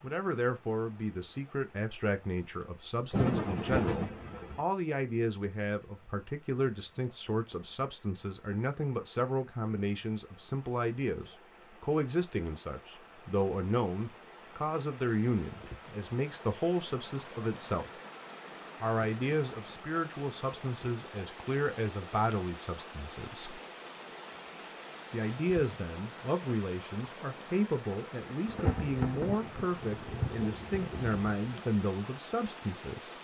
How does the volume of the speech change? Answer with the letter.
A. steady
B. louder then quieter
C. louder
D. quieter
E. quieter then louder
A.